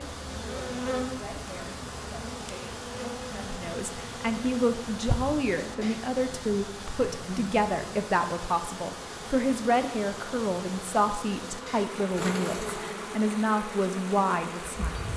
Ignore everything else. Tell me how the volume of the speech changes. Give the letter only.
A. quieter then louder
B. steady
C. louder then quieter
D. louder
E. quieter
D.